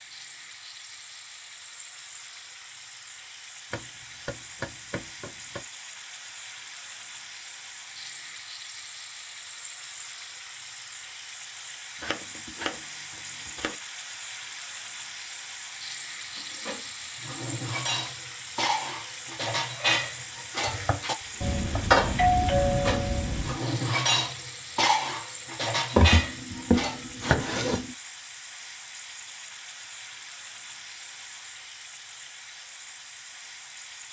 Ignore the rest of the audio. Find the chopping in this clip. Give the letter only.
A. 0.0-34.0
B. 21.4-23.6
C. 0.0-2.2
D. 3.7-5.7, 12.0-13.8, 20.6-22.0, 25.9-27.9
D.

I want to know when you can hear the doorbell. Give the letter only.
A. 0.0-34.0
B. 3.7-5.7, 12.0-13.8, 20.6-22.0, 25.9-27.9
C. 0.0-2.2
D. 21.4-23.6
D.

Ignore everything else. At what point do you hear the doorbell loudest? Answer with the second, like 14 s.
22 s.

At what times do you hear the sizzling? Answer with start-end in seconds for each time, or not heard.
0.0-34.0.